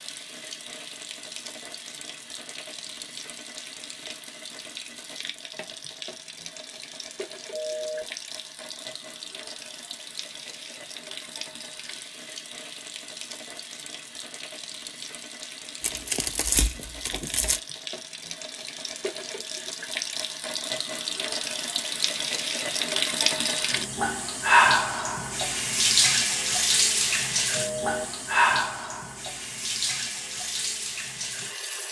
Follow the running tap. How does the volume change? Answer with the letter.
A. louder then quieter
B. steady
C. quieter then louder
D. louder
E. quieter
D.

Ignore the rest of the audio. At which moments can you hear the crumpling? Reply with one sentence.
The crumpling can be heard from 15.8 to 17.6 s.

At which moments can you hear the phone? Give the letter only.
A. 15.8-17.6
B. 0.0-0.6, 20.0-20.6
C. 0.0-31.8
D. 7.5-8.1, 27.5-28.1
D.